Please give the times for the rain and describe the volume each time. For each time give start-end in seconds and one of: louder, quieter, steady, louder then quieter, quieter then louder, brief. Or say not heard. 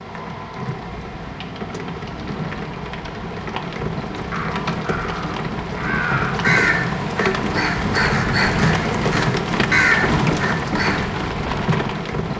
0.0-12.3 louder.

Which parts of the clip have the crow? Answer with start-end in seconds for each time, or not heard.
4.3-11.1.